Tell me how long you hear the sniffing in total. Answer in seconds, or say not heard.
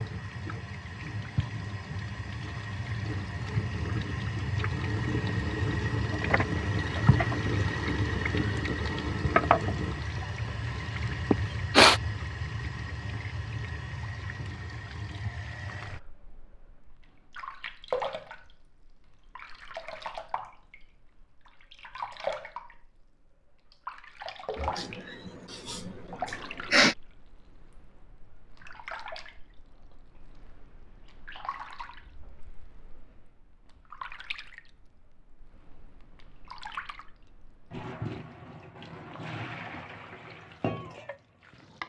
3 s.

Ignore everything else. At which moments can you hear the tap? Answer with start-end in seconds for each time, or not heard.
0.0-41.8.